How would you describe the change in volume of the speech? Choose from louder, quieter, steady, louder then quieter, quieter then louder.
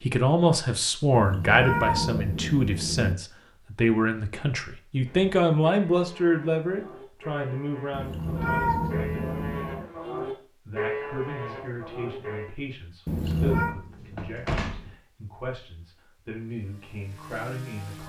quieter.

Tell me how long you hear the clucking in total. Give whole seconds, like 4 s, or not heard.
not heard.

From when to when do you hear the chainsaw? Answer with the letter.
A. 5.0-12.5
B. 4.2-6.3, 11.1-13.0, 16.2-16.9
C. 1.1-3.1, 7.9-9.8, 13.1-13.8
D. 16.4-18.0
D.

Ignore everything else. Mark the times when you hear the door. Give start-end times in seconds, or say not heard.
13.3-14.9.